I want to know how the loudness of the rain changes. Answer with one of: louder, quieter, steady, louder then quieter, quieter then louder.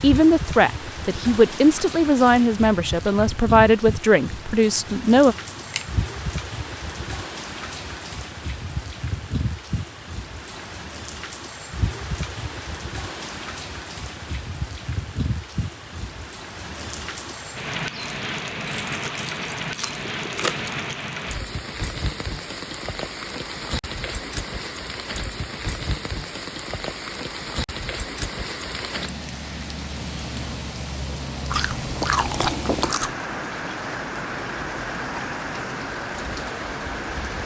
steady.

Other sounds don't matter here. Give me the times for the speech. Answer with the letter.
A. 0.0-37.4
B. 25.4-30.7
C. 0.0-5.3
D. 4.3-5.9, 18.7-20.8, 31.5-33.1
C.